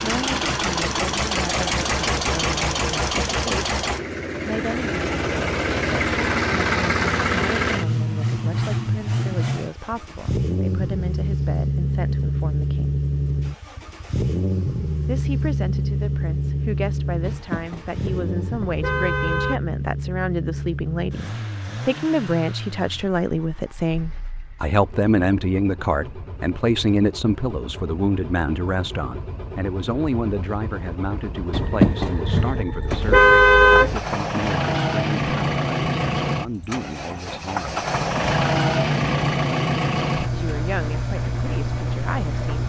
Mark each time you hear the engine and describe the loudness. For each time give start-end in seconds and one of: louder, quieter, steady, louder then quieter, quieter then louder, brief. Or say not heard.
0.0-42.6 quieter then louder.